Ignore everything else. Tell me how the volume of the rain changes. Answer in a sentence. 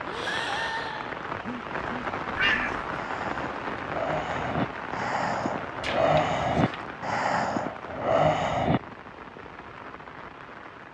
The volume of the rain goes down.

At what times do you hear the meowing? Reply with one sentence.
You can hear the meowing from 2.4 to 2.9 s and from 5.8 to 6.8 s.